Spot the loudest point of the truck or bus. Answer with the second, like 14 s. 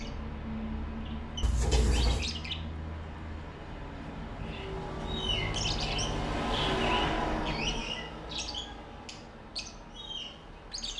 7 s.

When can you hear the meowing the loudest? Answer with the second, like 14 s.
2 s.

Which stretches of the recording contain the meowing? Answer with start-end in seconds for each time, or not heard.
1.4-2.3, 6.5-7.8.